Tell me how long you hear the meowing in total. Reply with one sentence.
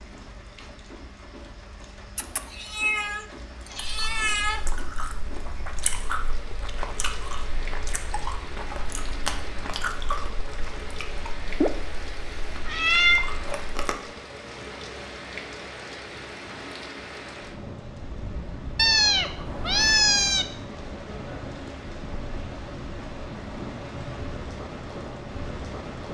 The meowing can be heard for 6 seconds in total.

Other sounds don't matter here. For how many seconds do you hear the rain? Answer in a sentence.
You can hear the rain for 26 seconds altogether.